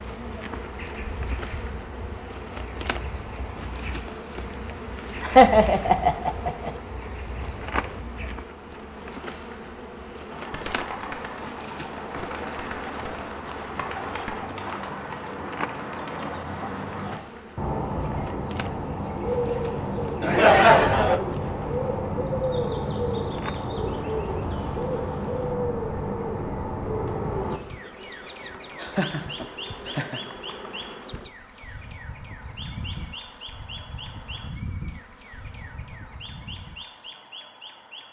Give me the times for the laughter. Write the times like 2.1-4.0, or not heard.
5.2-6.7, 20.2-21.2, 28.8-30.2.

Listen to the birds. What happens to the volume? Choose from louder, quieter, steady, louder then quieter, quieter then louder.
louder then quieter.